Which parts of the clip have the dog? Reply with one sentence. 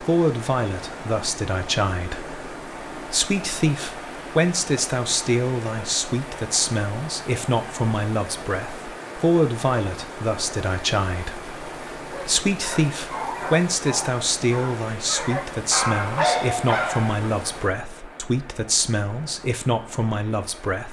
The dog can be heard from 12.1 to 17.2 s.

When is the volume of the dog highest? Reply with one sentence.
The loudest moment of the dog is at 16 seconds.